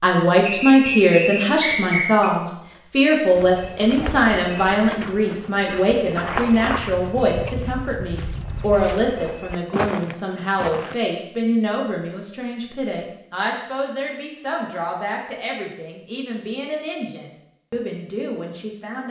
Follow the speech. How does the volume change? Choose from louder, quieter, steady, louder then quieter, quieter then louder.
quieter.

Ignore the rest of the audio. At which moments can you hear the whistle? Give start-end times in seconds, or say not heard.
0.5-2.3.